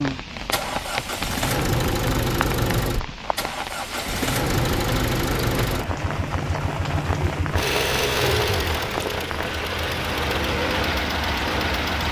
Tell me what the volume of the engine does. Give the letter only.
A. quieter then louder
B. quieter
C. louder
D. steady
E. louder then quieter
D.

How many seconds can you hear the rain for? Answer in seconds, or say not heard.
12 s.